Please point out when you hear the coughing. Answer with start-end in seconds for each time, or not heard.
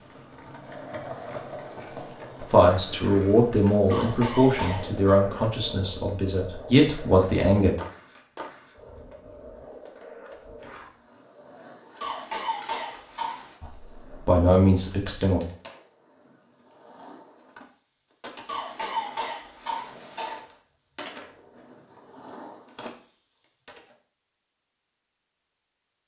3.9-5.2, 12.0-13.6, 18.4-20.4.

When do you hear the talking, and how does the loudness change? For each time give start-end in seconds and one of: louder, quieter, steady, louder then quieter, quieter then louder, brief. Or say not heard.
2.4-7.7 quieter then louder
13.6-15.4 brief.